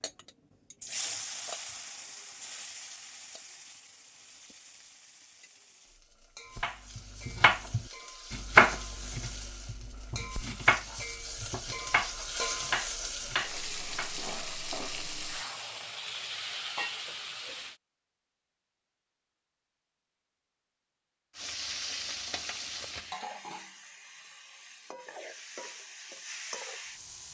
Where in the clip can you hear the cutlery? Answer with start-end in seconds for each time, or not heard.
not heard.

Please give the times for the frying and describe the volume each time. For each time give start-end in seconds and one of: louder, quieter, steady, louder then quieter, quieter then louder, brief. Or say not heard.
0.0-17.8 quieter then louder
21.4-27.2 quieter then louder.